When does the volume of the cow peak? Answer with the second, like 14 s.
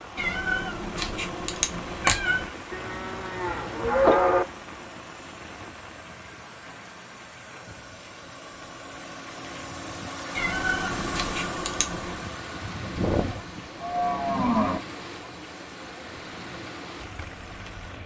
4 s.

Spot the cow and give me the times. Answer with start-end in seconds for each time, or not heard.
2.7-4.5, 12.8-14.8.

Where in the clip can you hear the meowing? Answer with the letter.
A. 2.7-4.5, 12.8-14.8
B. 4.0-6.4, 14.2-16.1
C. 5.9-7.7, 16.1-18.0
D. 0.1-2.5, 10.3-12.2
D.